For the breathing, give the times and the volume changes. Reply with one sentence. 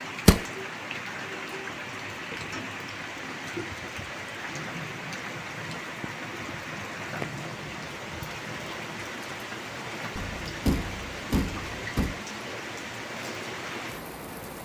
The breathing can't be heard in this clip.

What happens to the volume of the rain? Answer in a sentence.
The volume of the rain stays about the same.